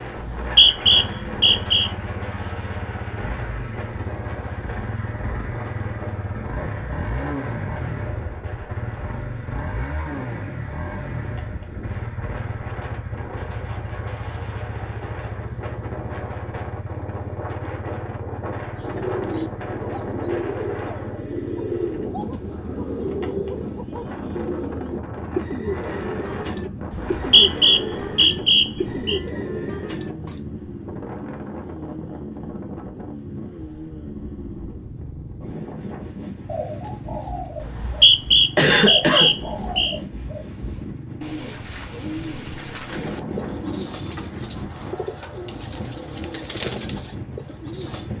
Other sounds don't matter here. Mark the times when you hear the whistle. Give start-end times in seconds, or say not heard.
0.1-1.9, 26.9-29.2, 37.6-40.0.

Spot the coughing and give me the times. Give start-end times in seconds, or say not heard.
38.5-39.3.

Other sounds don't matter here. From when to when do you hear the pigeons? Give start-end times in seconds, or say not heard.
18.8-30.4, 36.5-48.1.